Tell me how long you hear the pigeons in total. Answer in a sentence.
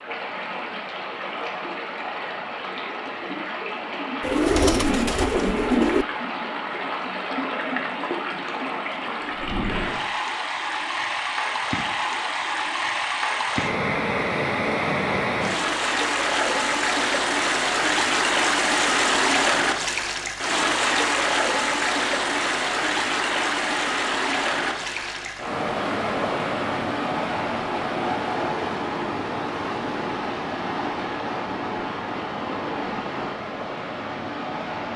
The pigeons can be heard for 2 seconds in total.